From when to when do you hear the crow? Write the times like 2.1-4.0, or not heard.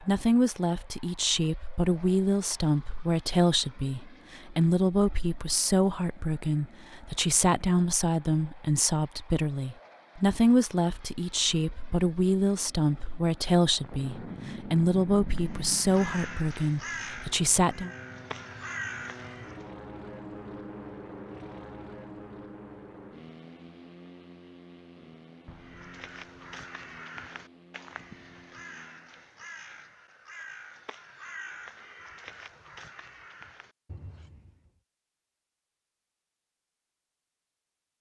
15.3-19.6, 25.6-34.8.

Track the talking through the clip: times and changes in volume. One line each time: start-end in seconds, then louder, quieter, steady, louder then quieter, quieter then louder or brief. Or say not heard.
0.0-17.9 steady.